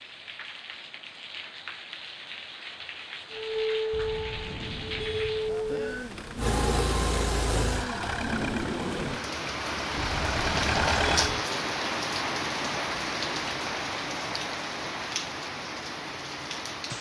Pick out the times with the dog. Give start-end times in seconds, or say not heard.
not heard.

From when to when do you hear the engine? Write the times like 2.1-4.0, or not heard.
6.3-11.3.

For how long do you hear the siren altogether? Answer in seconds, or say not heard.
3 s.